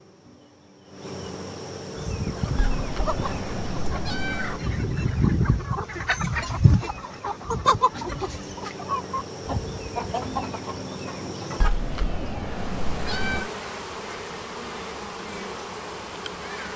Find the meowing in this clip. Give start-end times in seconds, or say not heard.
2.5-4.6, 11.6-13.5.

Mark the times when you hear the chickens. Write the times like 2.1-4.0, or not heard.
1.9-11.7.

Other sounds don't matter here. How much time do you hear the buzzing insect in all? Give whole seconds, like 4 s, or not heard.
17 s.